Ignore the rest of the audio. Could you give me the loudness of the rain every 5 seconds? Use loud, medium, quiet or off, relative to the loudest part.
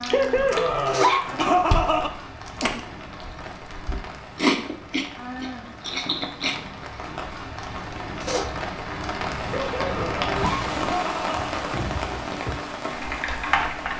medium, loud, loud.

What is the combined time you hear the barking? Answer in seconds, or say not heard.
4 s.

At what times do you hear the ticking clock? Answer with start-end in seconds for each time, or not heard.
not heard.